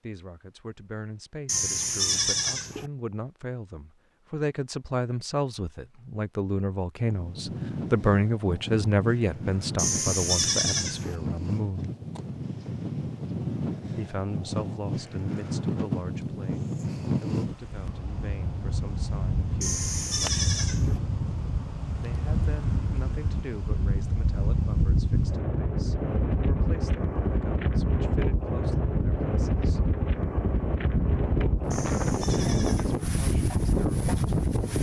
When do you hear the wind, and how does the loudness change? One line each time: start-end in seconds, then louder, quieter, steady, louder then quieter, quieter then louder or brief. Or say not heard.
7.0-34.7 louder.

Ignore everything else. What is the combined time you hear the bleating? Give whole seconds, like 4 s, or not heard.
6 s.